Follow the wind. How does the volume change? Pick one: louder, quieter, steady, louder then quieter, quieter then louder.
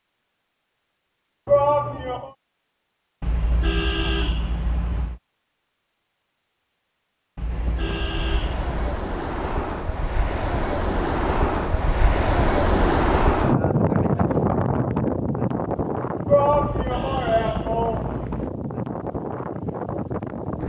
louder then quieter.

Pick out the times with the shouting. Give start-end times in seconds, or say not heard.
1.4-2.3, 16.2-18.2.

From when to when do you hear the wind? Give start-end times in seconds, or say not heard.
7.5-20.6.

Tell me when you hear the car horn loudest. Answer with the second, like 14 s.
4 s.